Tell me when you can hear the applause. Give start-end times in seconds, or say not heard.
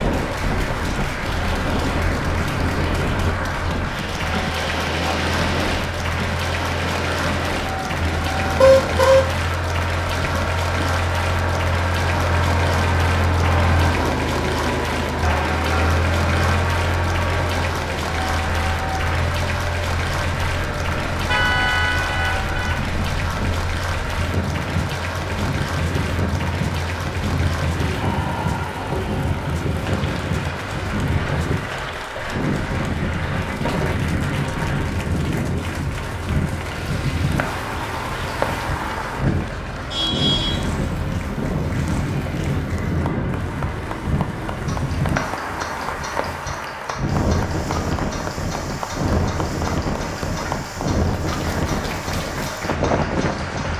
0.0-53.7.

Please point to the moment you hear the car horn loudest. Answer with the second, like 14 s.
9 s.